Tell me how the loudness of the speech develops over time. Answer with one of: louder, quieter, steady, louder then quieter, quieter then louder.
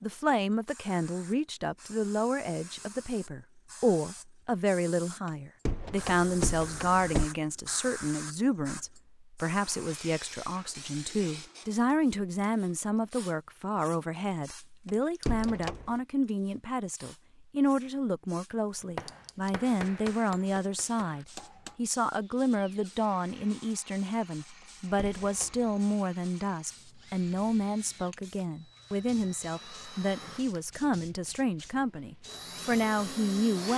steady.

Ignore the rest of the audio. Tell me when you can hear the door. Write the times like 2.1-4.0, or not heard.
5.7-7.3, 14.8-15.9, 24.6-25.8.